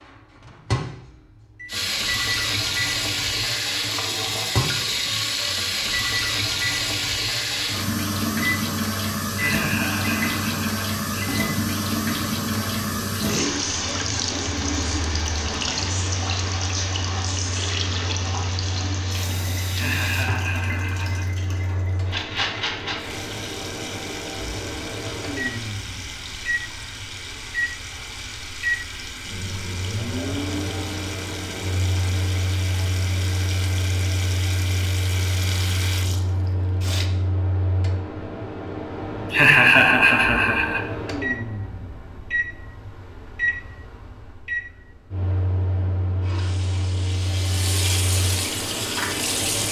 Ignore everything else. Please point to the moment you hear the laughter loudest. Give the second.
40 s.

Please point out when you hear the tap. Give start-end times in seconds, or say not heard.
1.6-37.1, 46.2-49.6.